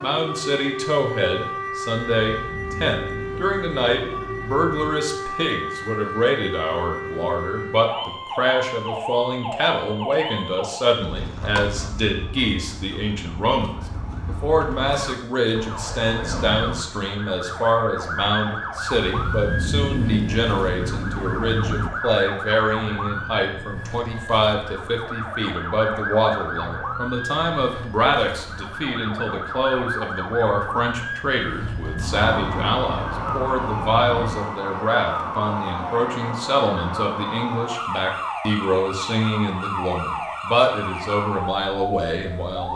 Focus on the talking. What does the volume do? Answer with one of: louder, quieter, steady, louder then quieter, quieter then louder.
steady.